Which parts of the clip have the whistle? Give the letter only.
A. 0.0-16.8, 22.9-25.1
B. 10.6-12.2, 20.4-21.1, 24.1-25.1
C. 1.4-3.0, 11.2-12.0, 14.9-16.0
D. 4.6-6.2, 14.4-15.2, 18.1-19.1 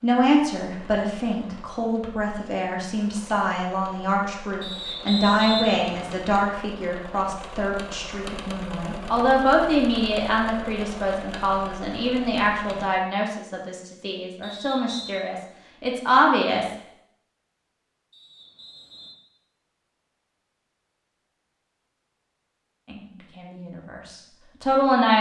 D.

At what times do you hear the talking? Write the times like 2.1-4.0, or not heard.
0.0-16.8, 22.9-25.1.